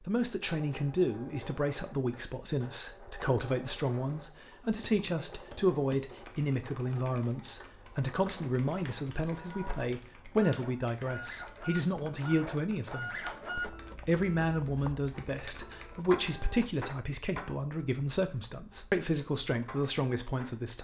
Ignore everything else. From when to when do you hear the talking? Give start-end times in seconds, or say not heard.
0.1-13.2, 13.9-20.7.